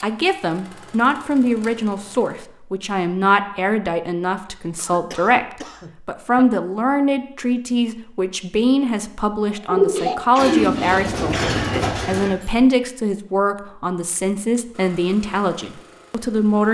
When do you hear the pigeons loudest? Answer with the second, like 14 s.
10 s.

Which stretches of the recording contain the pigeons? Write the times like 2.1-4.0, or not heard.
9.7-12.6.